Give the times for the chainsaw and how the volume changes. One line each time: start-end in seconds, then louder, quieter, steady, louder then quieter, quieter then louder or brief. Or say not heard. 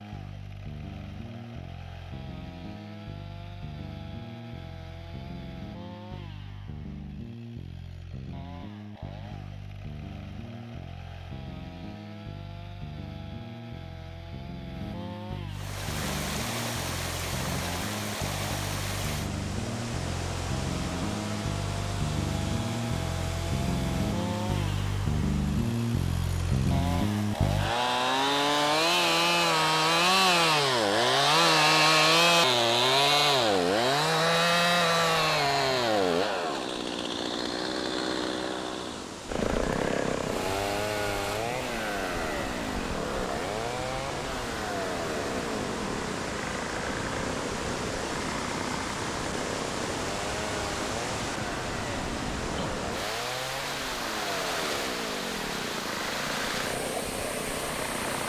0.0-58.2 louder then quieter.